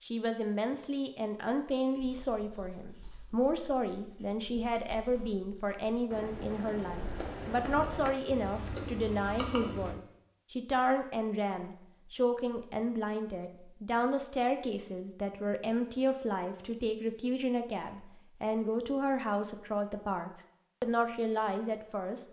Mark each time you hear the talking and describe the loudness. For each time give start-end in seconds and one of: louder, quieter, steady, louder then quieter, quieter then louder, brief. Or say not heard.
0.0-22.2 steady.